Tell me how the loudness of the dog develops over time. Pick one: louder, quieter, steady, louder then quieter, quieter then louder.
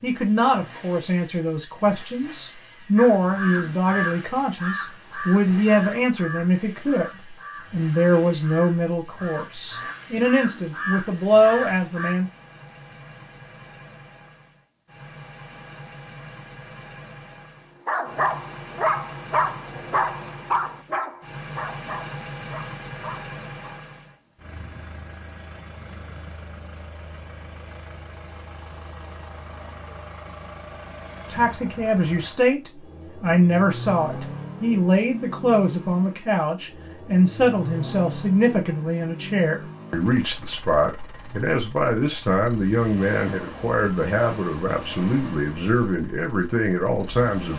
quieter.